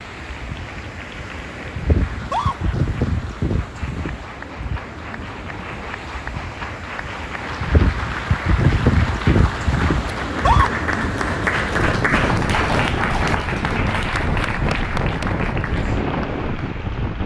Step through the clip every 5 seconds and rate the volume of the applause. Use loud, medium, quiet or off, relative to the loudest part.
quiet, medium, loud, medium.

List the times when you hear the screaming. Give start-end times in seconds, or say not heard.
2.1-2.5, 10.2-10.7.